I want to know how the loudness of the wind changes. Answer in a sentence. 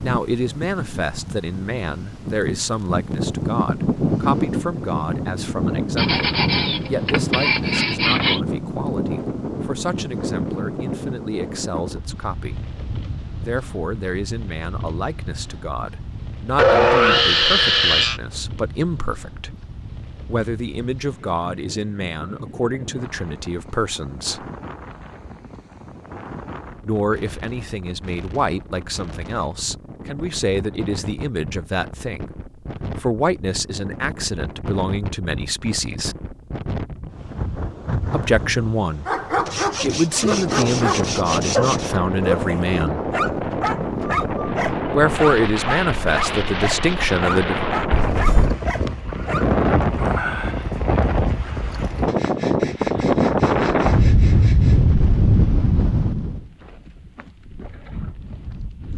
The loudness of the wind goes down, then up.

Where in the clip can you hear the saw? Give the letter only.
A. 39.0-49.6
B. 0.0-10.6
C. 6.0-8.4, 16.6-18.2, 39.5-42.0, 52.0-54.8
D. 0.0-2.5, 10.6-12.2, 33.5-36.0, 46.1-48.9
C.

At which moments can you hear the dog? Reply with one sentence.
You can hear the dog from 39.0 to 49.6 s.